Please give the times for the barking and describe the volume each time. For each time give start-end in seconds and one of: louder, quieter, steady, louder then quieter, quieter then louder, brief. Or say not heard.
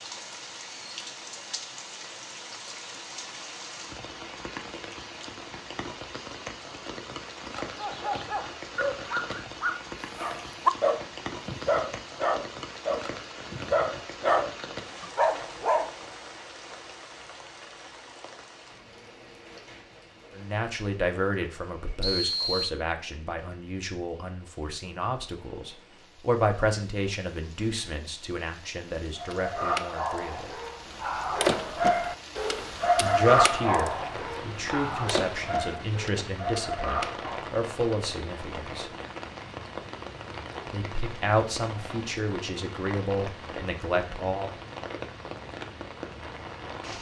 7.5-15.9 louder
29.1-37.5 louder then quieter.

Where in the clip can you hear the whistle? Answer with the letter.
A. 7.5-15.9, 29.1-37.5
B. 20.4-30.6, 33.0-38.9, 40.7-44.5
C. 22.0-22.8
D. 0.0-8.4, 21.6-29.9
C.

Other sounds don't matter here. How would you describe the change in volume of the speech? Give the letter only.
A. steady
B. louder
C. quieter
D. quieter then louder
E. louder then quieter
A.